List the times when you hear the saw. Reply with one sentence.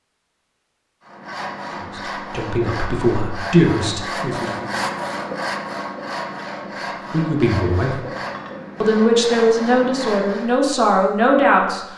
The saw can be heard from 1.0 to 10.6 s.